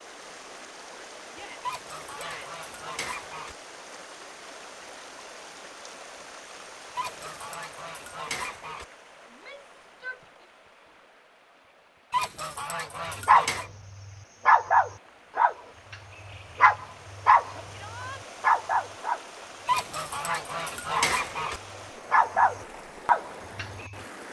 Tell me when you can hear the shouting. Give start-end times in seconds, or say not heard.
1.3-2.6, 9.3-10.4, 17.7-18.2.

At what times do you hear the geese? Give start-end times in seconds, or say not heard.
1.6-3.5, 7.0-8.8, 12.1-13.7, 19.6-21.6.